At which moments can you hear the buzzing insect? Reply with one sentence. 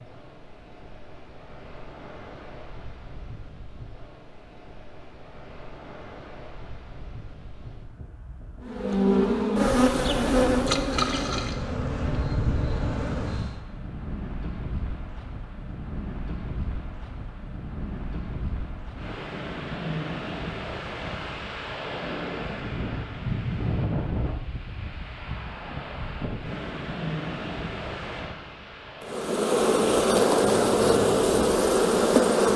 You can hear the buzzing insect from 8.6 to 13.6 s and from 29.0 to 32.5 s.